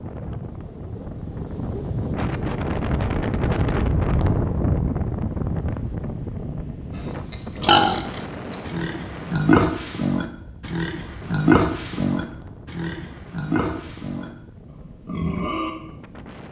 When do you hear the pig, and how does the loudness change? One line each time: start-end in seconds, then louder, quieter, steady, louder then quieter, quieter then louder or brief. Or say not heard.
7.3-15.7 quieter.